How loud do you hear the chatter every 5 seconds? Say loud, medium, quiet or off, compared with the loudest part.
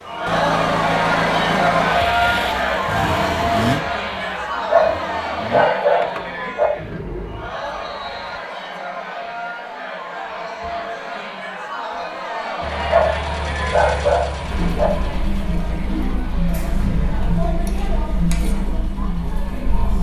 loud, medium, medium, medium.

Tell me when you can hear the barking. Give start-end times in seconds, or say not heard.
4.7-6.7, 12.8-14.9.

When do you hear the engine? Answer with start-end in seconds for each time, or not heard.
0.0-7.5, 12.6-19.9.